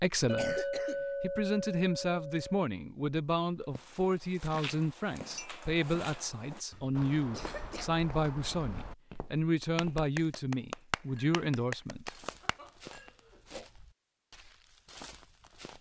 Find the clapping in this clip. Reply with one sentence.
The clapping can be heard from 9.8 to 12.6 s.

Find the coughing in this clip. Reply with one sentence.
You can hear the coughing from 0.1 to 1.1 s, from 6.7 to 7.9 s and from 12.4 to 13.7 s.